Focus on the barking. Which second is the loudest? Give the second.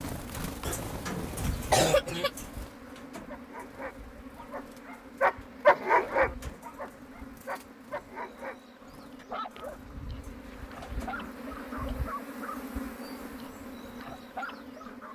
6 s.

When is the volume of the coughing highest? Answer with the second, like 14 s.
2 s.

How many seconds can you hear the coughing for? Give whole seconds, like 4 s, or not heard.
2 s.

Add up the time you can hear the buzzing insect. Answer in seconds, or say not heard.
15 s.